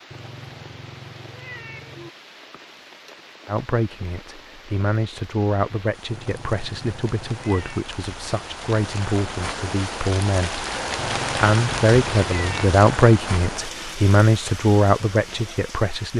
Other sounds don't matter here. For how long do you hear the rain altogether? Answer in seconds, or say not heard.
16 s.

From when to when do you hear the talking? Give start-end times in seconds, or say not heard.
3.5-16.1.